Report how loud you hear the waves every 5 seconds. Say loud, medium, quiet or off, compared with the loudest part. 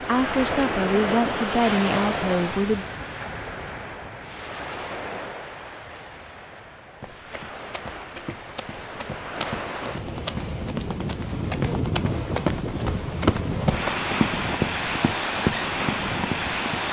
loud, medium, loud, loud.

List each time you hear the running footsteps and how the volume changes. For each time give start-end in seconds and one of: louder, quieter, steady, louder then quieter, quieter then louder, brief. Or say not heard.
7.0-16.8 louder.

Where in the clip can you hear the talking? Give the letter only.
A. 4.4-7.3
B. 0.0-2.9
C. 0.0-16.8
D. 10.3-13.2
B.